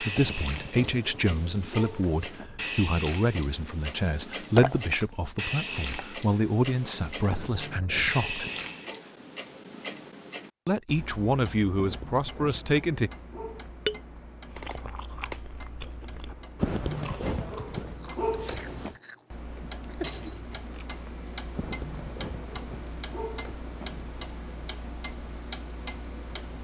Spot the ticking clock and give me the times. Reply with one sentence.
You can hear the ticking clock from 0.0 to 26.5 s.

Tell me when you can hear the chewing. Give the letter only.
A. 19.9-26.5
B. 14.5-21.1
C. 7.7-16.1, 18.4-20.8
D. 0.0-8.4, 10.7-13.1
B.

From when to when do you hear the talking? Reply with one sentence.
You can hear the talking from 0.0 to 8.4 s and from 10.7 to 13.1 s.